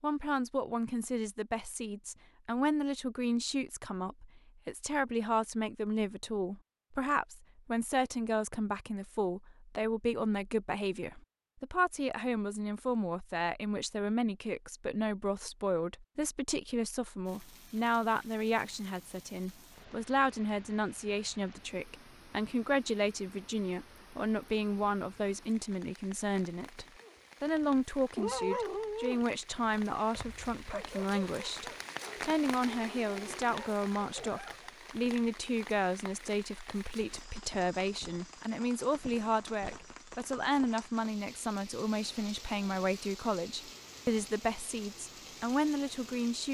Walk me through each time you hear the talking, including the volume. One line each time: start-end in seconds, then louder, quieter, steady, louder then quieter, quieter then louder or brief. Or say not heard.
0.0-46.4 steady.